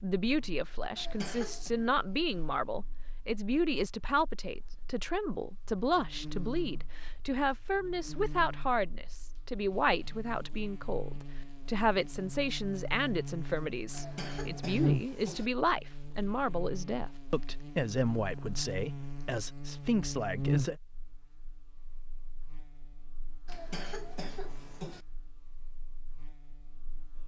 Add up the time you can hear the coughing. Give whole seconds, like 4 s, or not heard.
4 s.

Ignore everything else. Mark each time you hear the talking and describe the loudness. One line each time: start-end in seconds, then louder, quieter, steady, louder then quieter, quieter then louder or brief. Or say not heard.
0.0-20.8 steady.